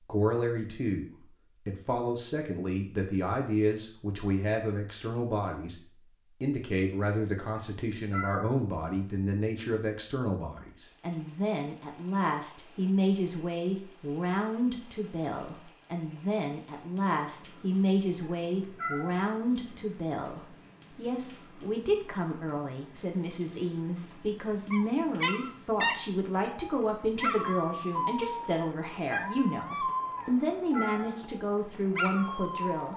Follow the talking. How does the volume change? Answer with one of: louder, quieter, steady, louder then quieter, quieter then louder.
steady.